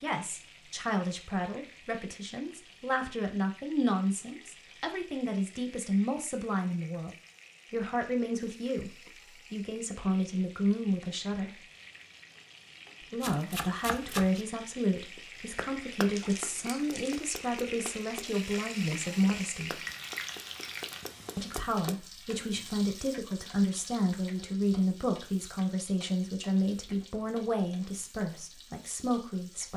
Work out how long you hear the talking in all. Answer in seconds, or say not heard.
26 s.